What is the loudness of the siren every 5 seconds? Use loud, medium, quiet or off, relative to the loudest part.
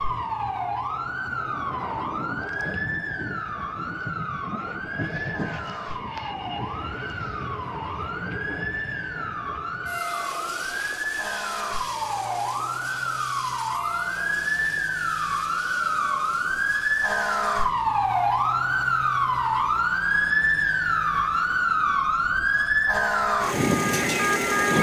medium, medium, medium, loud, loud.